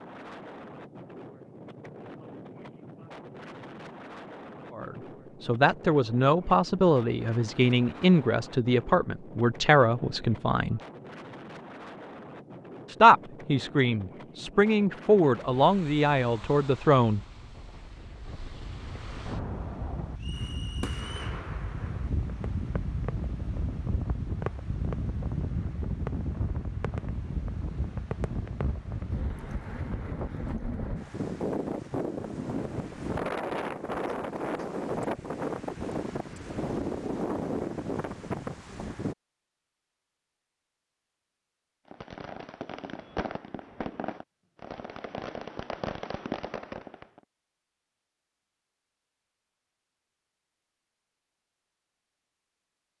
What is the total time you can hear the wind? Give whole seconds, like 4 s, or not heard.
39 s.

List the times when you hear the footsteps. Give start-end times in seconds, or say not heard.
not heard.